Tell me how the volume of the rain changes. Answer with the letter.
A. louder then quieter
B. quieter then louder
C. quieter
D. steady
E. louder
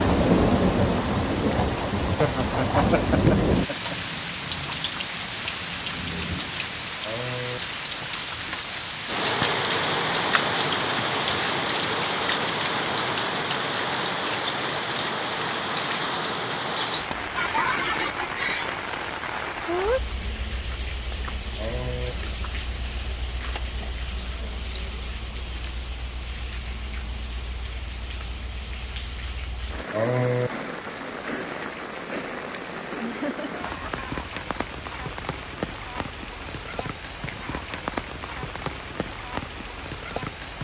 C.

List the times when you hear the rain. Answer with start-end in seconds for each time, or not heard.
0.0-40.5.